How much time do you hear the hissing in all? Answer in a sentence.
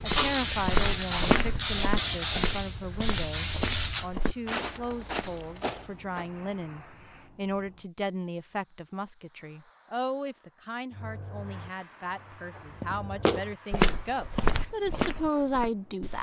You can hear the hissing for 16 seconds altogether.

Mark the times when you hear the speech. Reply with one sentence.
You can hear the speech from 0.0 to 16.1 s.